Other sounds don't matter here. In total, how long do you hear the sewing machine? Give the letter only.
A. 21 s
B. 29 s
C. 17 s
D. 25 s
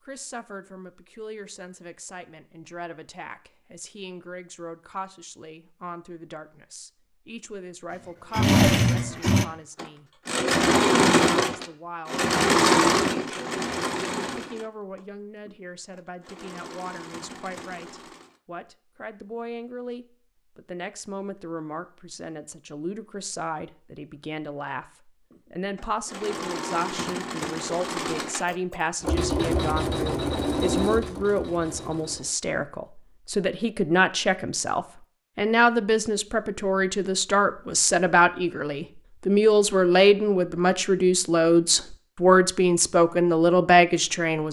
C.